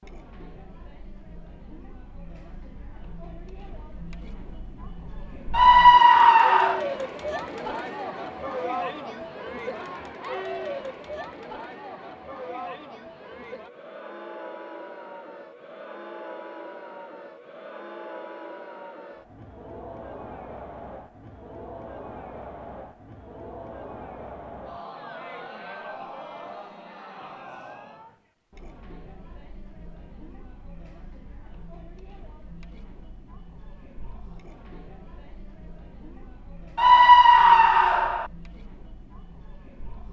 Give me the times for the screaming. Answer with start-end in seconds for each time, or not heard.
5.5-6.8, 36.8-38.2.